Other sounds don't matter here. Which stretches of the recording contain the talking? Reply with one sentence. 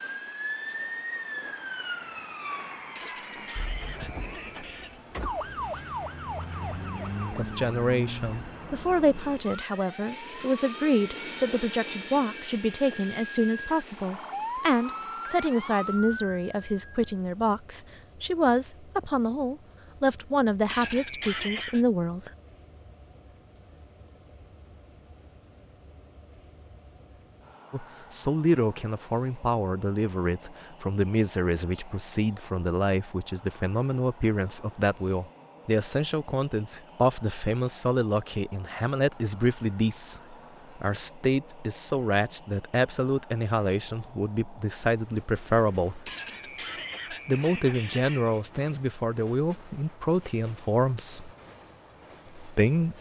The talking can be heard from 7.3 to 22.3 s, from 27.7 to 46.1 s, from 47.2 to 51.3 s and from 52.4 to 52.9 s.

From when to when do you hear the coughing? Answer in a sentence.
The coughing can be heard from 3.0 to 5.0 s, from 20.6 to 21.9 s and from 46.0 to 48.4 s.